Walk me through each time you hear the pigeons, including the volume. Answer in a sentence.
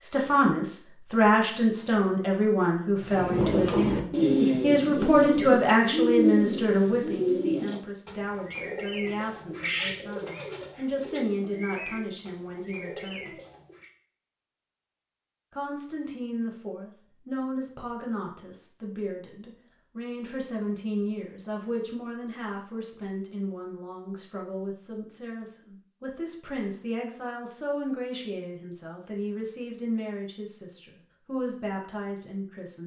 You can hear the pigeons from 3.0 to 13.8 s, getting quieter.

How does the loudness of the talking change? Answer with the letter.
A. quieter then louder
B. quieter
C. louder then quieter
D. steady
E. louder
B.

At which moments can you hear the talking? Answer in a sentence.
You can hear the talking from 0.0 to 13.3 s and from 15.5 to 32.8 s.